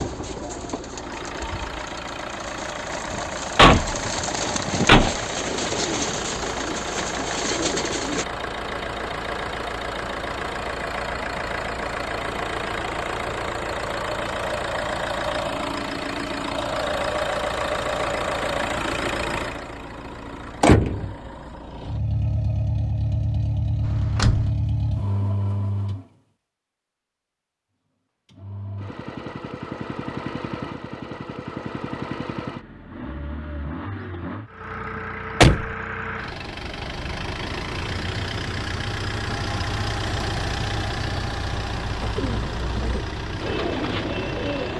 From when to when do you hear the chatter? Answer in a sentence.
The chatter can't be heard in this clip.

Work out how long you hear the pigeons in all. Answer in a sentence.
The pigeons can be heard for 11 seconds in total.